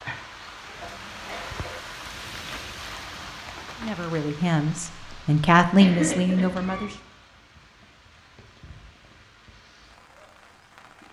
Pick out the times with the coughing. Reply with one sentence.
You can hear the coughing from 0.7 to 1.8 s and from 5.8 to 7.0 s.